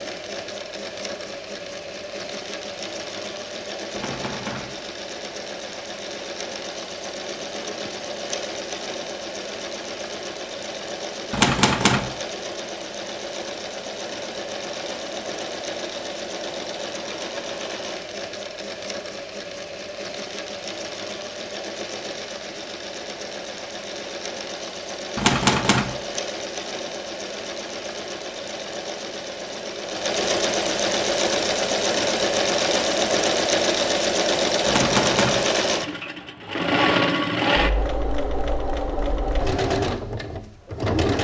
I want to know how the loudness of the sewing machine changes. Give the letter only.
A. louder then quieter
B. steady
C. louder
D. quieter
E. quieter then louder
C.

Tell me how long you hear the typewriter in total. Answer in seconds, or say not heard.
3 s.